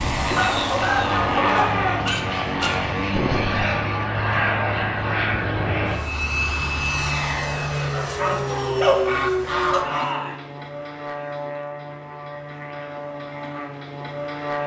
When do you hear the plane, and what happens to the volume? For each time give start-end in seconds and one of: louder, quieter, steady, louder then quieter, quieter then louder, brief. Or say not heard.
0.0-14.6 quieter.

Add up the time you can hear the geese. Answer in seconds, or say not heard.
4 s.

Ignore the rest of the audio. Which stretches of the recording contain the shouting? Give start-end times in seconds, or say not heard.
1.4-2.2, 9.8-10.4.